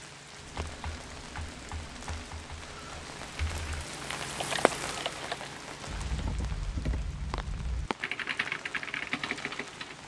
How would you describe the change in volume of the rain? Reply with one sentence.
The loudness of the rain goes up, then down.